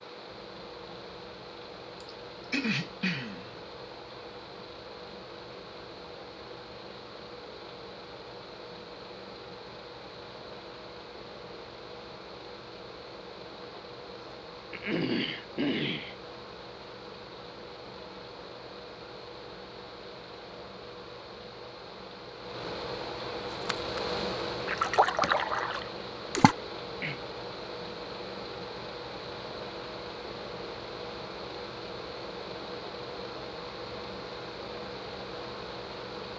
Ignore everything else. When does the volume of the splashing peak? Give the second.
25 s.